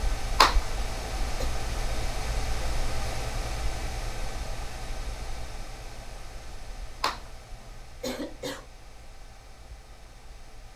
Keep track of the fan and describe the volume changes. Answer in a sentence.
The loudness of the fan goes down.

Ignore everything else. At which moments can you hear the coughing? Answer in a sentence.
You can hear the coughing from 0.3 to 1.4 s and from 7.0 to 8.7 s.